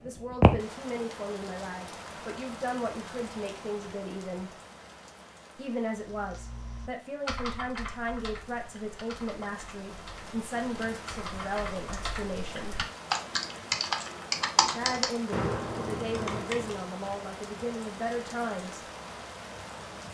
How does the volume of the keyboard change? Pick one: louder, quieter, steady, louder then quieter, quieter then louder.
quieter then louder.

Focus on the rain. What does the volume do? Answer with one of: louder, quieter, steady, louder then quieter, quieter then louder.
quieter then louder.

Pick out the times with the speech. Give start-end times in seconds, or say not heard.
0.0-4.5, 5.5-12.8, 14.7-18.8.